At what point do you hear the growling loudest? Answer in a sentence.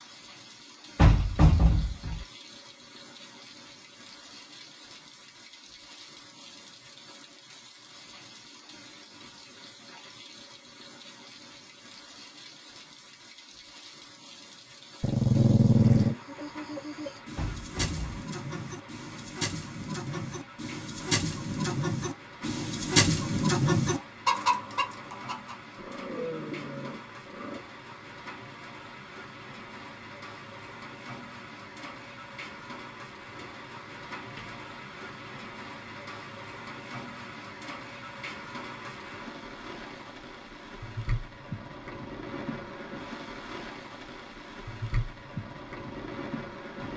The loudest moment of the growling is at 16 seconds.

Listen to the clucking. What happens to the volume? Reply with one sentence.
The loudness of the clucking goes up.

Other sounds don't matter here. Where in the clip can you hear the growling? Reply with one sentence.
You can hear the growling from 15.0 to 16.1 s and from 25.8 to 27.6 s.